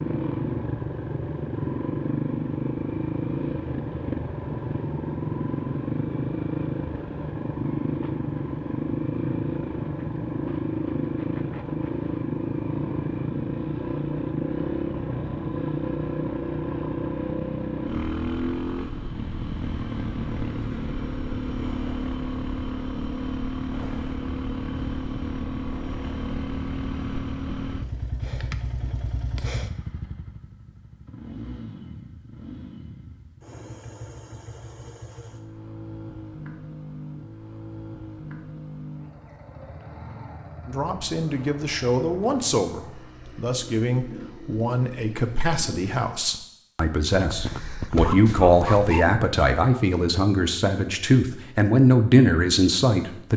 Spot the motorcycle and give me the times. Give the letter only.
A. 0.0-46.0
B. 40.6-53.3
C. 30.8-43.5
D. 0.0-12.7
A.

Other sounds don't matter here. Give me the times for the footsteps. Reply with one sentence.
You can't hear the footsteps here.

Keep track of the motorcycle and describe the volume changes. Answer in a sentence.
The volume of the motorcycle goes down.